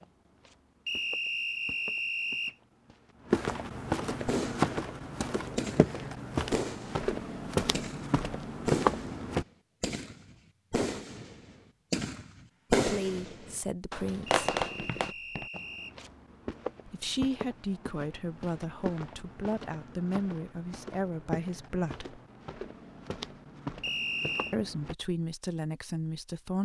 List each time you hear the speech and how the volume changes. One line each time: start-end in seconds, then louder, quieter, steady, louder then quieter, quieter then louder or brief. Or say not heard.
12.8-14.4 brief
16.9-22.1 steady
24.5-26.6 brief.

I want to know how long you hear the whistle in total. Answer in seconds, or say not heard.
4 s.